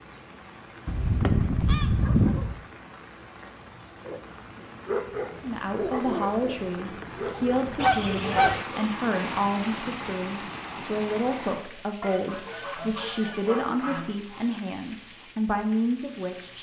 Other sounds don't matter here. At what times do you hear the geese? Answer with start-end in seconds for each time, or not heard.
0.8-2.5, 7.8-8.7, 12.0-14.6.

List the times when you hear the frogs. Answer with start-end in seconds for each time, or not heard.
not heard.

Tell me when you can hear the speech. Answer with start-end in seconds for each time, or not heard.
5.4-16.5.